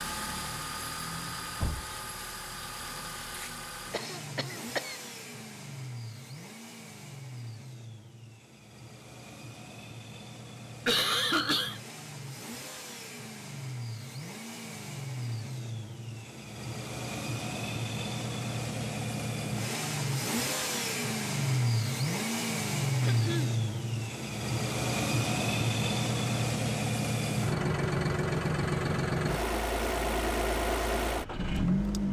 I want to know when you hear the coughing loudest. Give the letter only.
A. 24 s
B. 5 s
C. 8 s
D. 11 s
D.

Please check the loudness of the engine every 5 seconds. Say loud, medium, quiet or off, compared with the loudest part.
medium, quiet, quiet, medium, loud, loud, loud.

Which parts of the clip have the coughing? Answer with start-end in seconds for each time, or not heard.
3.9-5.0, 10.8-11.8, 23.0-23.6.